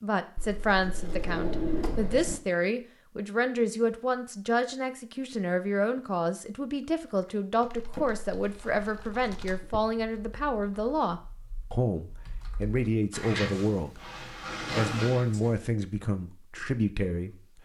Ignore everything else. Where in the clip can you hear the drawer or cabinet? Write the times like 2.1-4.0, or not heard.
0.3-2.4, 7.8-9.8, 13.1-15.6.